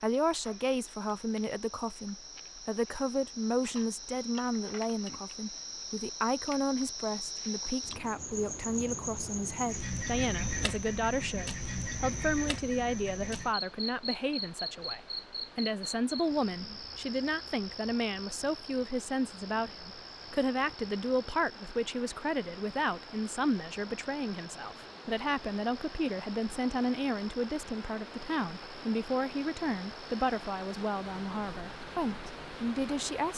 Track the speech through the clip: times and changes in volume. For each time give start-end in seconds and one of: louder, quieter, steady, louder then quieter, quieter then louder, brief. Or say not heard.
0.0-33.3 steady.